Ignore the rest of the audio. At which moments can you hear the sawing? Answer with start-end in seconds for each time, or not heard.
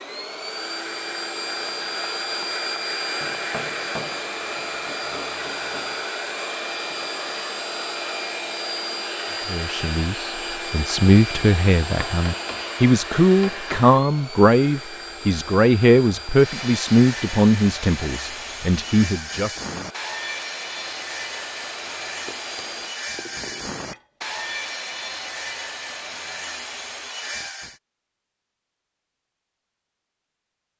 16.3-27.8.